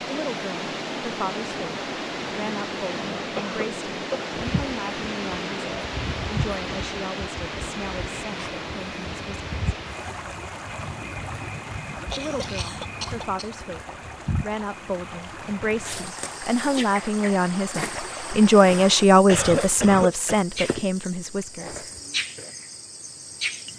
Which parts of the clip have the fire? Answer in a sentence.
The fire can't be heard in this clip.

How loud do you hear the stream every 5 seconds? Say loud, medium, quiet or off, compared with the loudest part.
loud, loud, medium, medium, off.